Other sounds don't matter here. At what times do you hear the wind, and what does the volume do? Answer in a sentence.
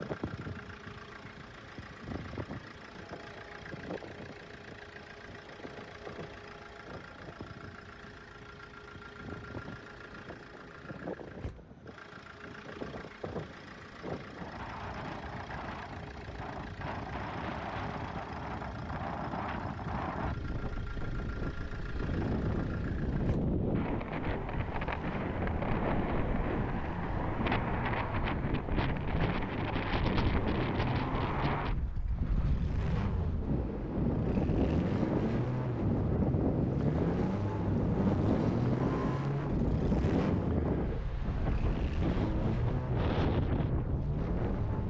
You can hear the wind from 0.0 to 44.8 s, getting louder.